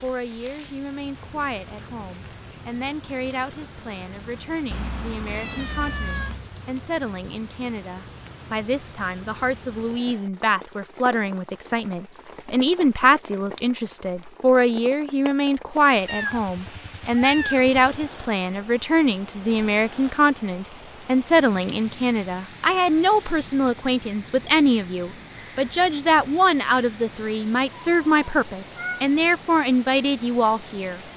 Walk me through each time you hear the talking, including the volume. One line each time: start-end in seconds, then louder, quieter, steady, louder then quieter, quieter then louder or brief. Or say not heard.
0.0-31.0 louder.